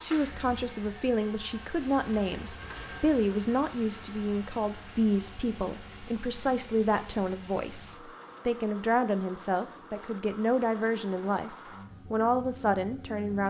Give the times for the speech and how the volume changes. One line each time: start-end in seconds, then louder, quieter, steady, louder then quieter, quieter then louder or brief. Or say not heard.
0.0-13.4 steady.